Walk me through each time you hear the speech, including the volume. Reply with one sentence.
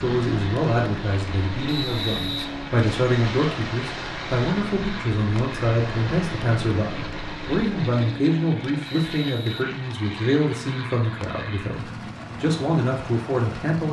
You can hear the speech from 0.0 to 13.8 s, at a steady volume.